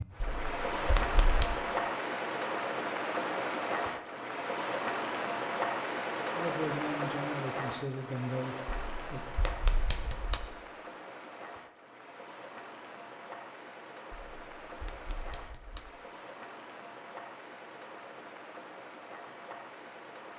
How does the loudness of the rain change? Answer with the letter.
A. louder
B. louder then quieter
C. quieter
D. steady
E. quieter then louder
C.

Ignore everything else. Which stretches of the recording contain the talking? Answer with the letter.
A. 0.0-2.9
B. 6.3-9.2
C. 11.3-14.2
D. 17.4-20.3
B.